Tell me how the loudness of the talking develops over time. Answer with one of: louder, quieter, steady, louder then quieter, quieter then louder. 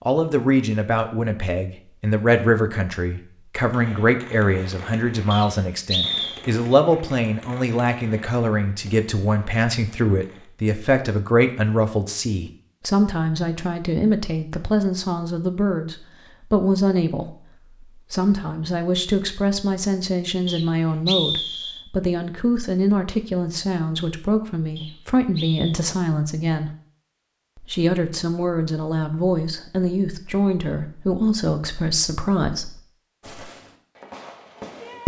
steady.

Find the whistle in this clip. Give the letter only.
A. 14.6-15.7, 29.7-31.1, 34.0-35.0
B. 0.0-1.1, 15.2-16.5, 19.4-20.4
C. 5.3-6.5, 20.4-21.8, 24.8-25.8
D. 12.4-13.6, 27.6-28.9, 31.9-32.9
C.